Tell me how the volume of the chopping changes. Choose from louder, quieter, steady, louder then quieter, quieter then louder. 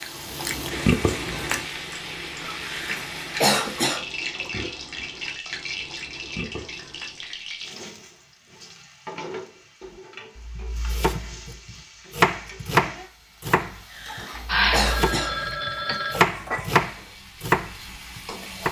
quieter then louder.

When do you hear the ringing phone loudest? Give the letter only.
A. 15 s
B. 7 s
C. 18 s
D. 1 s
A.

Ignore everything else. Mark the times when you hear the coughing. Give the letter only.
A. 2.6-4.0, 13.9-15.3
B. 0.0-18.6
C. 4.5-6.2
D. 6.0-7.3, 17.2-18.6
A.